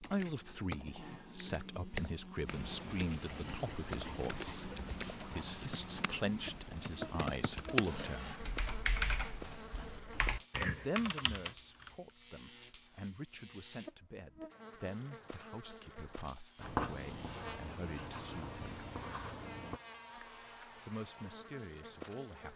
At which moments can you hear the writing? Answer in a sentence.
You can hear the writing from 2.5 to 10.2 s and from 16.6 to 19.8 s.